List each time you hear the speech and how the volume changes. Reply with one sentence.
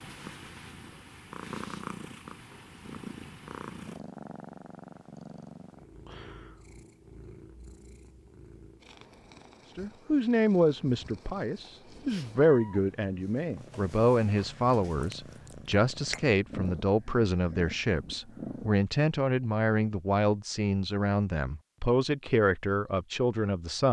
You can hear the speech from 9.8 to 23.8 s, at a steady volume.